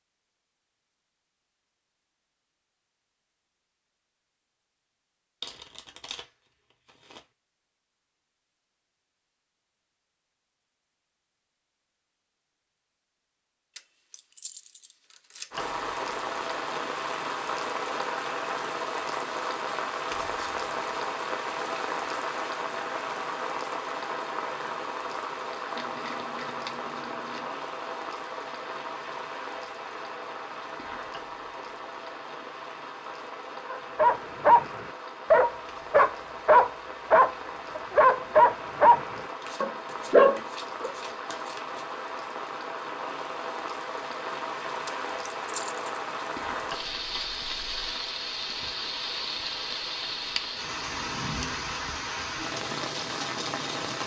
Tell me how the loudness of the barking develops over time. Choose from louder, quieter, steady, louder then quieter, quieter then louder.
steady.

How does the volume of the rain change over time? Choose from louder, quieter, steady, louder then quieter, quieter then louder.
quieter then louder.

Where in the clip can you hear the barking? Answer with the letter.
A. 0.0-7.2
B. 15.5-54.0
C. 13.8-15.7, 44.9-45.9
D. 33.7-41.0
D.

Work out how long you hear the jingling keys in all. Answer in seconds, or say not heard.
3 s.